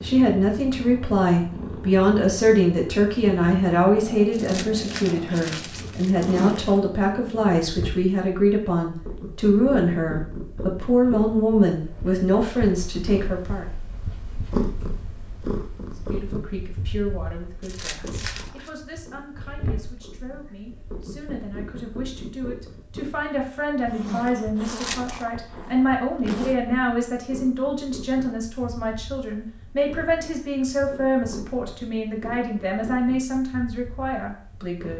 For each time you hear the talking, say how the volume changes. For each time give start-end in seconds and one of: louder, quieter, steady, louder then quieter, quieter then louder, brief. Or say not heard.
0.0-13.7 steady
15.9-34.9 louder.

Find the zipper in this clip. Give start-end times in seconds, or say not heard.
6.2-6.9, 23.9-26.6.